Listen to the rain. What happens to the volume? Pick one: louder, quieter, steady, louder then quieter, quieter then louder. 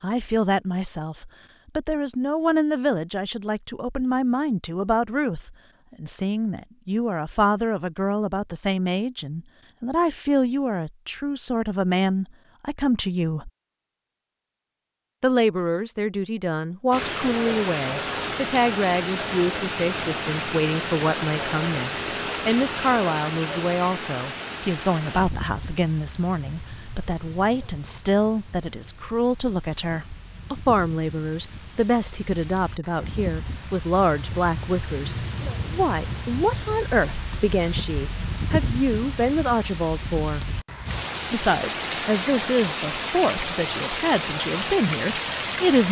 quieter then louder.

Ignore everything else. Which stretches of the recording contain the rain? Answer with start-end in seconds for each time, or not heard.
16.9-45.8.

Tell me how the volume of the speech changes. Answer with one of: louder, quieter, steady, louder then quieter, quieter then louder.
steady.